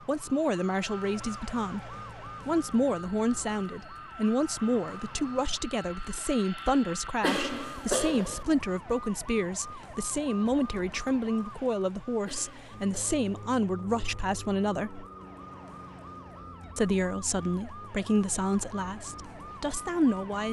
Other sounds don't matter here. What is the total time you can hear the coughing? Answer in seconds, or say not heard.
2 s.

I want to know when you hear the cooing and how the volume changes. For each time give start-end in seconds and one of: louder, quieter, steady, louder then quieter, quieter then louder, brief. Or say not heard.
not heard.